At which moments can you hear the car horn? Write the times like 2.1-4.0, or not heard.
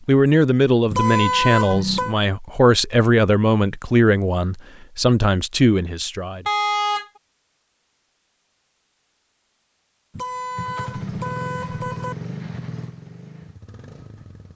0.9-2.1, 6.5-7.1, 10.1-12.2.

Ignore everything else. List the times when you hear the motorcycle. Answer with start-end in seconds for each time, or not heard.
10.6-14.4.